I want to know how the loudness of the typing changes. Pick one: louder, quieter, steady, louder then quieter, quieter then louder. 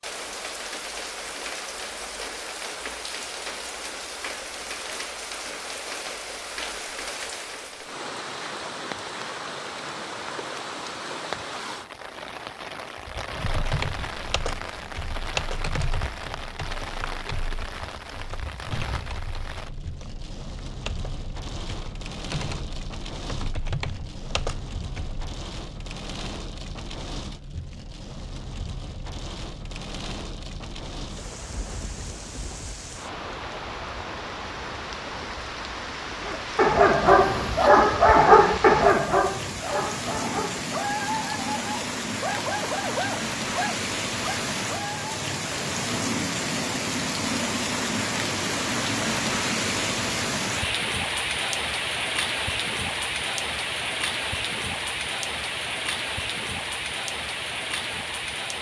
quieter then louder.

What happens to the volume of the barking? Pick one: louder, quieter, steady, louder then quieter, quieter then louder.
quieter.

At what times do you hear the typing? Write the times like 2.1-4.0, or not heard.
13.4-25.3.